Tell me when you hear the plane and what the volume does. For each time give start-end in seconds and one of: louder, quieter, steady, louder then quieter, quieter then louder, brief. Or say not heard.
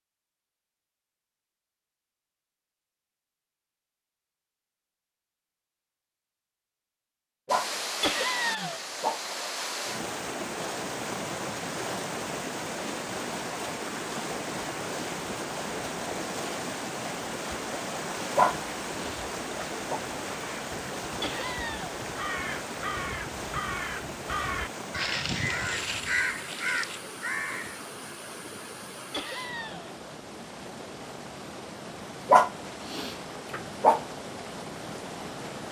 not heard.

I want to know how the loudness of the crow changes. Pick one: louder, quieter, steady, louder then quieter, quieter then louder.
louder.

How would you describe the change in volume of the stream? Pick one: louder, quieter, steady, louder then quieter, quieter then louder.
quieter.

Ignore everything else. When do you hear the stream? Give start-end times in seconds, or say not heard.
7.5-35.6.